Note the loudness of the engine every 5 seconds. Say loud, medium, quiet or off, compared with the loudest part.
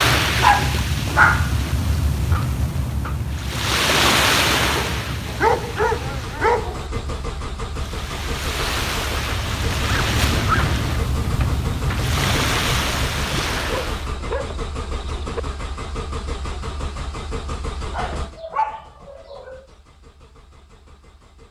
off, loud, loud, loud, quiet.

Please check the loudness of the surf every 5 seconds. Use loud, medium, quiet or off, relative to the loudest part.
loud, medium, loud, off, off.